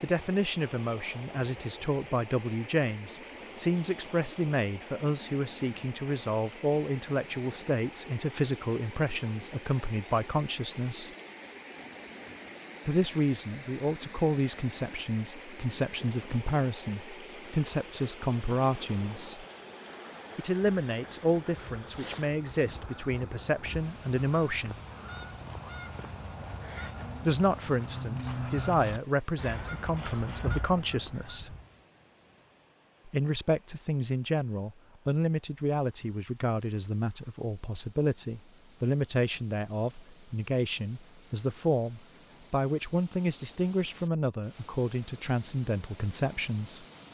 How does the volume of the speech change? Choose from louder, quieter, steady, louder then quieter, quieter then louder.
steady.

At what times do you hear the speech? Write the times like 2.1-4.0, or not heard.
0.0-11.1, 12.8-19.4, 20.4-24.8, 27.2-31.6, 33.0-46.9.